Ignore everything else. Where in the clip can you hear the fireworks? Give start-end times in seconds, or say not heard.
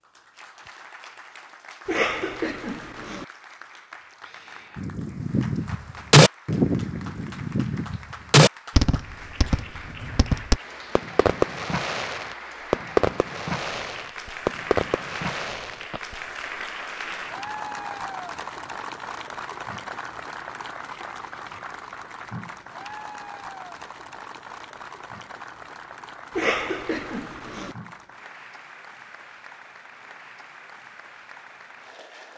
4.8-16.0.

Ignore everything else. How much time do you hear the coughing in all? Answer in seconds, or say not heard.
3 s.